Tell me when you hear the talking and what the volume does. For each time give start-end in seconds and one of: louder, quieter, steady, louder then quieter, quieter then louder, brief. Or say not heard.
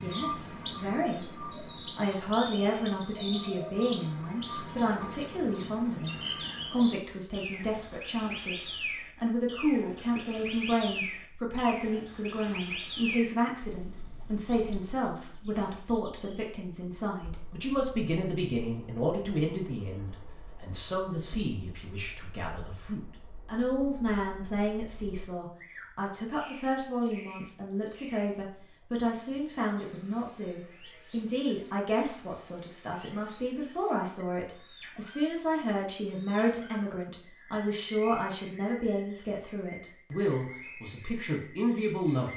0.0-42.3 steady.